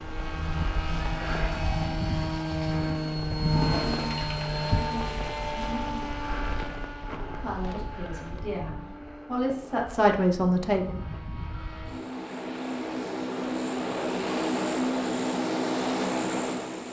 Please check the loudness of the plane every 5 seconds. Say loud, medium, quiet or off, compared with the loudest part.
loud, medium, loud, loud.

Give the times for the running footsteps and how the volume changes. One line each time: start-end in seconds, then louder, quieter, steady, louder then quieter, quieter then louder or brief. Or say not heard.
not heard.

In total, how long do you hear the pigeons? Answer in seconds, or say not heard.
3 s.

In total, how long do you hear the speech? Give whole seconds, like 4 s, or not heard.
4 s.